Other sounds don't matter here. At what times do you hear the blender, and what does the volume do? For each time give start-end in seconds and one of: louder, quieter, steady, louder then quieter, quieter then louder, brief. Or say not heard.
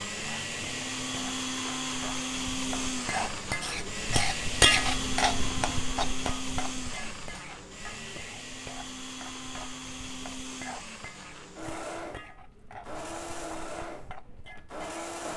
0.0-15.3 quieter.